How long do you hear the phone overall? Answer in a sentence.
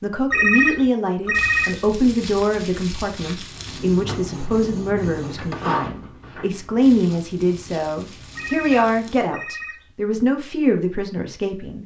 You can hear the phone for 3 seconds altogether.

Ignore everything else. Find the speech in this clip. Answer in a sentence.
The speech can be heard from 0.0 to 11.8 s.